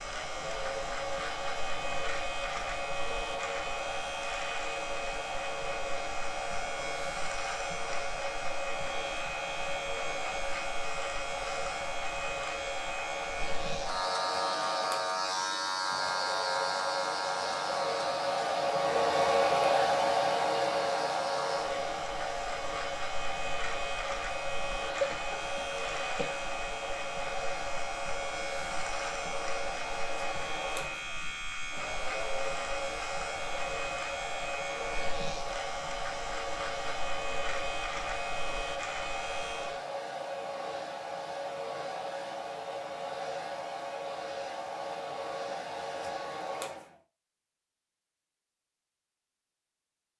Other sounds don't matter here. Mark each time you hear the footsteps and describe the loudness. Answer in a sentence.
You can't hear the footsteps here.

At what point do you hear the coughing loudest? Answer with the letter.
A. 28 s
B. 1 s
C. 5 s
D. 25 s
D.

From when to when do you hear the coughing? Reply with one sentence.
The coughing can be heard from 24.8 to 26.4 s.